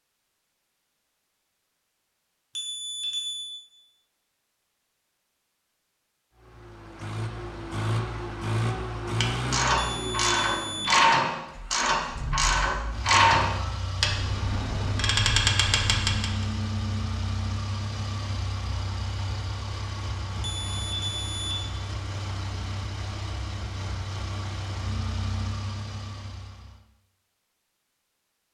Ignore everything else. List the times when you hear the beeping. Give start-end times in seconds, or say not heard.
2.5-3.5, 9.8-10.9, 20.4-21.6.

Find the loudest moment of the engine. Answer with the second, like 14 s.
9 s.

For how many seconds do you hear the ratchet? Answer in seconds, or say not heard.
7 s.